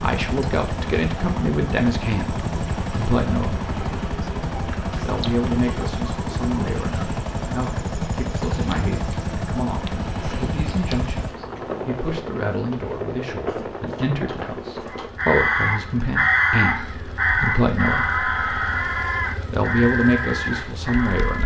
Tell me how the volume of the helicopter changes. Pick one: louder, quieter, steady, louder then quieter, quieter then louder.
quieter.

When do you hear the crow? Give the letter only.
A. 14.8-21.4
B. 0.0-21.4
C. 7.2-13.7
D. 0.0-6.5
A.